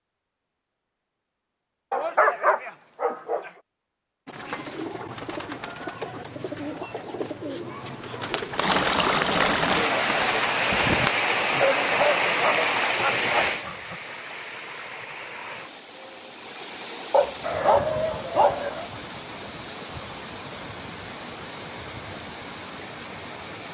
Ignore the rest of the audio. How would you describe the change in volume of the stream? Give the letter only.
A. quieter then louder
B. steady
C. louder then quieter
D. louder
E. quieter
E.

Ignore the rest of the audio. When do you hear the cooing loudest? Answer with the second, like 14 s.
11 s.